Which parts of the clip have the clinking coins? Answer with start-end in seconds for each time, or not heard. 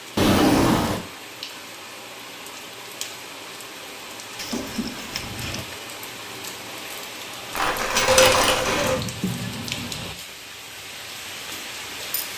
7.5-9.0.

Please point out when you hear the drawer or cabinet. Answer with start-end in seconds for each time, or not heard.
0.1-1.1, 4.3-5.7, 8.9-10.1.